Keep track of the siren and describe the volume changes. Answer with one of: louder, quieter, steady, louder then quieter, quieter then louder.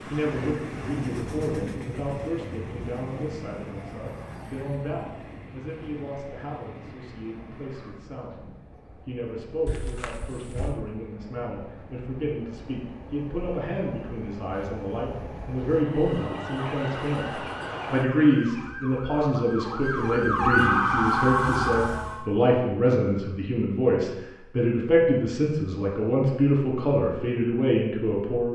louder.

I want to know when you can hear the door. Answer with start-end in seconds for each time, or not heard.
9.7-10.8.